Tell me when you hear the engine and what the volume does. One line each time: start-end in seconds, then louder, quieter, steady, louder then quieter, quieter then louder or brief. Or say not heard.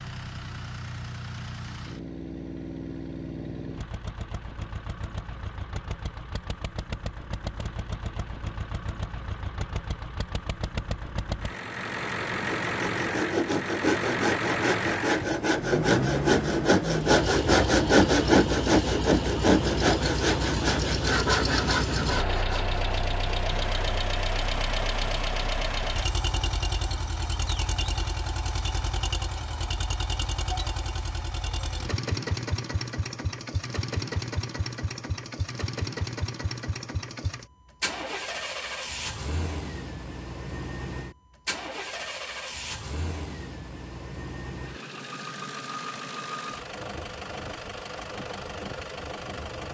0.0-49.6 louder then quieter.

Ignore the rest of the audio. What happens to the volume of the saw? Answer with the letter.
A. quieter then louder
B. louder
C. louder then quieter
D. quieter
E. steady
C.